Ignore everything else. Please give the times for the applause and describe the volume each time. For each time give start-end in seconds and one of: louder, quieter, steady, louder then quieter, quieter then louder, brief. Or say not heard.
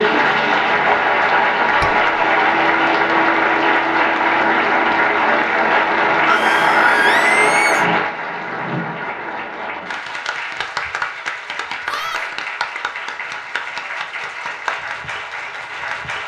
0.0-16.2 quieter.